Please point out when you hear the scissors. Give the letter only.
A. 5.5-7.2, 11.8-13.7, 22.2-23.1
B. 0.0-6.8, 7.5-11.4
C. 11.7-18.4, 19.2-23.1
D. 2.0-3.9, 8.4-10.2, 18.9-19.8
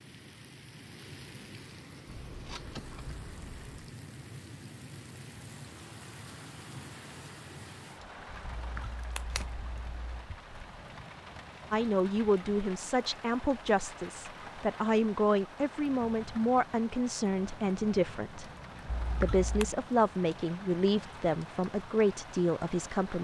D.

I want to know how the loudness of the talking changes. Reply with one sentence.
The loudness of the talking stays about the same.